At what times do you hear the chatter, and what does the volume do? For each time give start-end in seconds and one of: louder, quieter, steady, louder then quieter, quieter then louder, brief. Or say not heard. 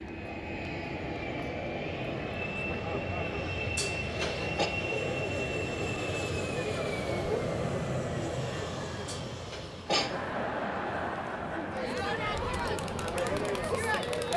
0.0-14.3 louder.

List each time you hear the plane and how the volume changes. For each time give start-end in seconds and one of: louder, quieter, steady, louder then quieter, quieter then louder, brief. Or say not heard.
0.0-14.3 quieter.